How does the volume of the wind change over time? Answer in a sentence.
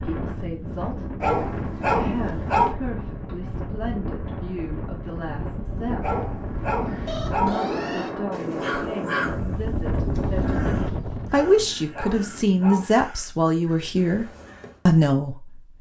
The loudness of the wind goes up.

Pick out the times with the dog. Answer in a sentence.
The dog can be heard from 1.2 to 2.8 s, from 6.0 to 7.5 s and from 11.3 to 12.8 s.